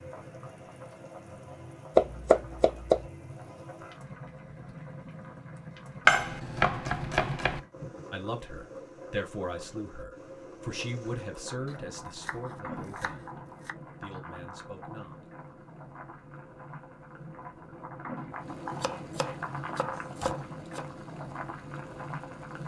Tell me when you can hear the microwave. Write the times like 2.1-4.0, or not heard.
not heard.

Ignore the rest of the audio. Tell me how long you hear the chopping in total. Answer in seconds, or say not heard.
7 s.